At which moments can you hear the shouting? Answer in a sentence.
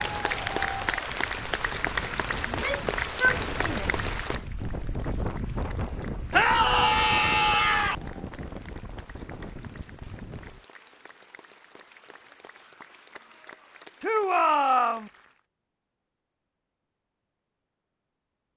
You can hear the shouting from 2.5 to 4.0 s, from 6.3 to 8.0 s and from 14.0 to 15.1 s.